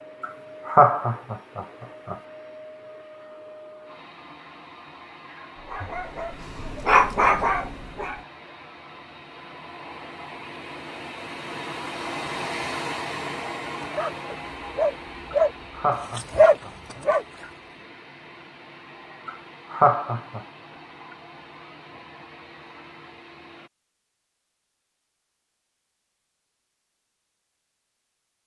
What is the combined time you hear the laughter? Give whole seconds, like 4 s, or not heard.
5 s.